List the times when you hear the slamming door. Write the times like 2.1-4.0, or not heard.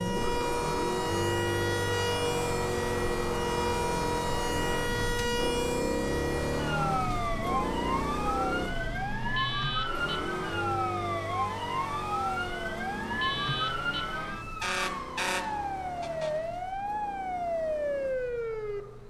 not heard.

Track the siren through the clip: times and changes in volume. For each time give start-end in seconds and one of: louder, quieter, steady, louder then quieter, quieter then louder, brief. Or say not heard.
0.0-19.0 steady.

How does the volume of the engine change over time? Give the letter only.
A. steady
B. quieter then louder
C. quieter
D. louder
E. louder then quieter
C.